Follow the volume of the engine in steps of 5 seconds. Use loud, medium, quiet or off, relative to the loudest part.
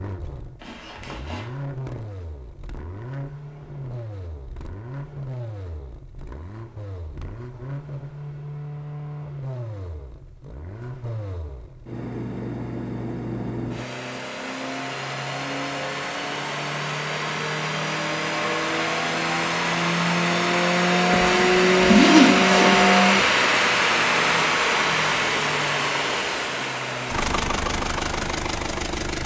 quiet, quiet, quiet, medium, loud, medium.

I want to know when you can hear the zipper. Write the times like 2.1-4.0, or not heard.
0.6-1.4, 21.1-22.9.